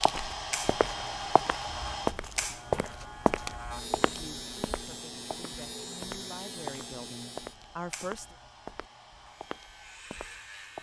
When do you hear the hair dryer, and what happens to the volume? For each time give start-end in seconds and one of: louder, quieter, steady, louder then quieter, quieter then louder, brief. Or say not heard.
0.0-10.7 quieter.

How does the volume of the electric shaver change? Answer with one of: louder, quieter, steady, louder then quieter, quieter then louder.
quieter.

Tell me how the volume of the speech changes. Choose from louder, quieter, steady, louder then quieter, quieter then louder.
louder.